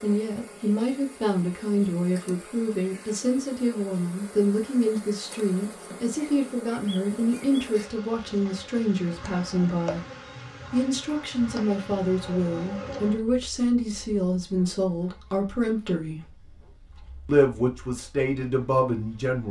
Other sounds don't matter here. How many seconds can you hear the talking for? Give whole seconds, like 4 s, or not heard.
18 s.